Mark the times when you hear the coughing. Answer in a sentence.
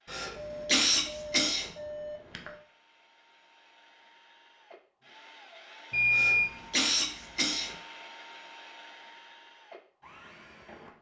You can hear the coughing from 0.1 to 1.7 s and from 6.1 to 7.8 s.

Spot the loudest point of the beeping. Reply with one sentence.
The volume of the beeping peaks at 6 seconds.